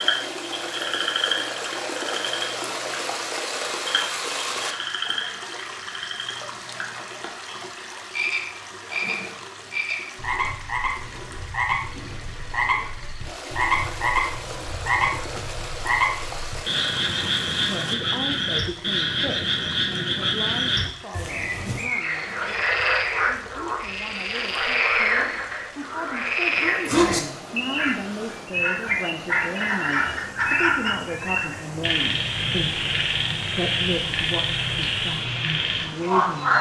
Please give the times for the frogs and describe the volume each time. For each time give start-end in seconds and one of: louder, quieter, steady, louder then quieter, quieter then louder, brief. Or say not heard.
0.0-36.5 louder.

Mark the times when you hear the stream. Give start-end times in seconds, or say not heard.
0.0-36.5.